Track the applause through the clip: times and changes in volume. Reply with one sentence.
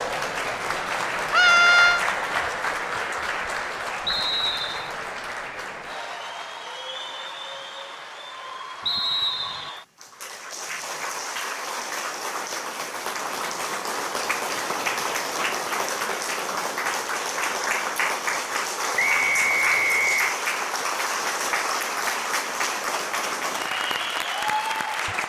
The applause can be heard from 0.0 to 25.2 s, getting quieter then louder.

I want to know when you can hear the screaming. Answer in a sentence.
You can hear the screaming from 1.3 to 2.0 s.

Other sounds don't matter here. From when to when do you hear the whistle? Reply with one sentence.
The whistle can be heard from 4.0 to 4.9 s, from 8.8 to 9.7 s and from 18.9 to 20.4 s.